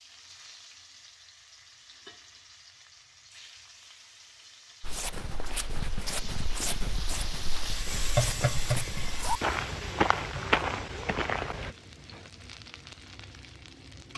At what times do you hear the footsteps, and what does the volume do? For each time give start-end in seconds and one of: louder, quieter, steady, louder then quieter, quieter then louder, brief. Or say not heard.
4.8-11.8 louder.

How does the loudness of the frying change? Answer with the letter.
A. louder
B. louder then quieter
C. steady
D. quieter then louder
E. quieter
B.